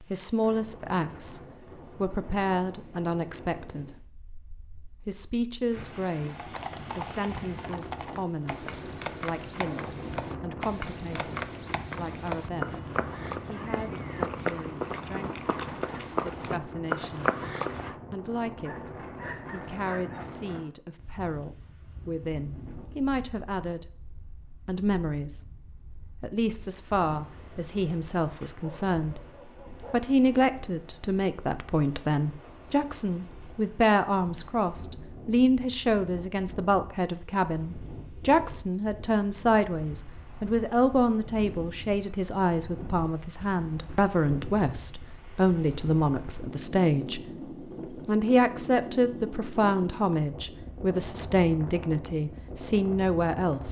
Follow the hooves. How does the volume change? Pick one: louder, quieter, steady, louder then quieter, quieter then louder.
louder.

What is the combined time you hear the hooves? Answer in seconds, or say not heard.
12 s.